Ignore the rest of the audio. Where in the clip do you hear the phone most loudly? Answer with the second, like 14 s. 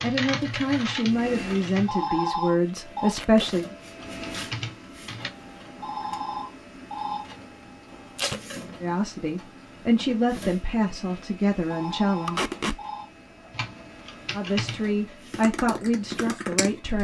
2 s.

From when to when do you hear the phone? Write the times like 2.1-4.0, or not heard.
1.9-3.1, 5.8-7.2, 11.7-13.1.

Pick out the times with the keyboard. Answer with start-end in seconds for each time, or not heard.
0.0-2.0, 4.0-5.3, 13.5-16.9.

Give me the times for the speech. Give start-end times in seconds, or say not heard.
0.0-3.6, 8.8-12.4, 14.3-16.9.